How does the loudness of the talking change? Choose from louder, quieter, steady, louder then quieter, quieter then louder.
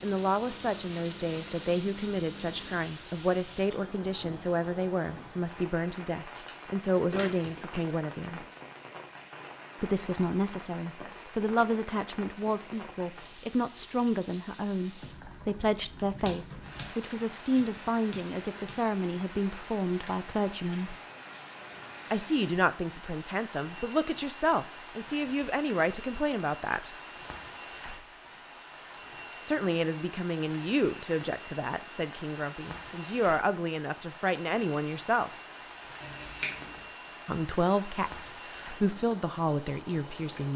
steady.